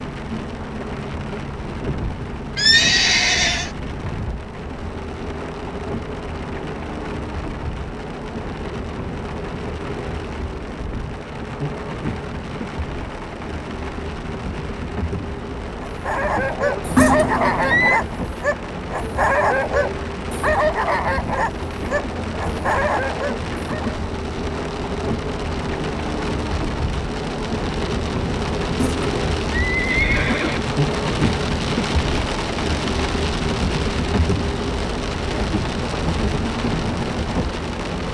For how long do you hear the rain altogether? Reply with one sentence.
The rain can be heard for 38 seconds in total.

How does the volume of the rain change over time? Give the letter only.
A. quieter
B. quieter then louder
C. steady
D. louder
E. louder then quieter
D.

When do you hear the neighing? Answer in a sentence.
The neighing can be heard from 2.5 to 3.7 s, from 16.9 to 18.0 s and from 28.8 to 30.6 s.